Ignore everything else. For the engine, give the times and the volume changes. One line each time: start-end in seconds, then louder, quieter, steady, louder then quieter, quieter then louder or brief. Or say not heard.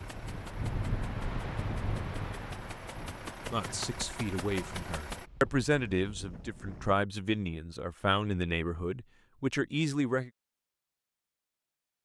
0.0-5.3 louder.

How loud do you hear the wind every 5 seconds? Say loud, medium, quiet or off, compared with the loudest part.
loud, medium, off.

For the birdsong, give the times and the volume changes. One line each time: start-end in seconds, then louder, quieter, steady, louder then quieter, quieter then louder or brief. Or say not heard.
not heard.